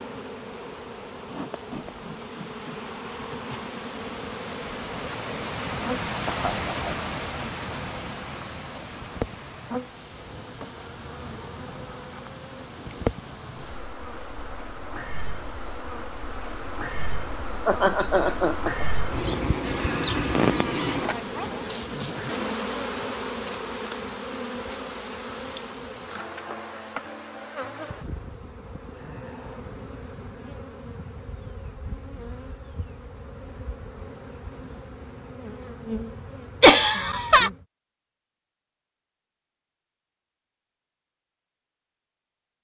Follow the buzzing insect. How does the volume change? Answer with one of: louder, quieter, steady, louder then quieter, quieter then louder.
louder then quieter.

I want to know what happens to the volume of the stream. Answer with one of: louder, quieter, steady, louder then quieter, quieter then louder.
louder then quieter.